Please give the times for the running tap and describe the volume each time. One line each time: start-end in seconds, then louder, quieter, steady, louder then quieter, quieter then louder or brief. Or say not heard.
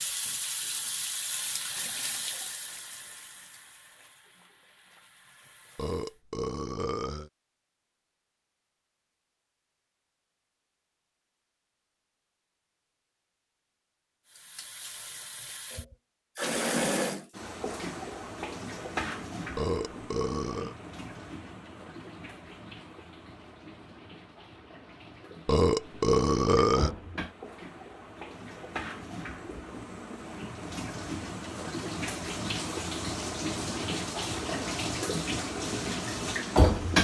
0.0-6.2 quieter
14.2-36.9 quieter then louder.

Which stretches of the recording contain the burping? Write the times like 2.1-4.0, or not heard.
5.8-7.3, 19.6-20.8, 25.4-26.9.